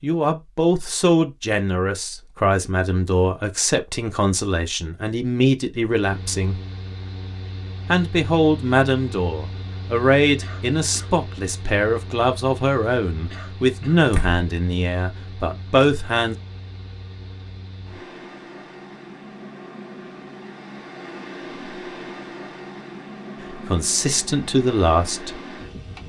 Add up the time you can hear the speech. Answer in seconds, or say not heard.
17 s.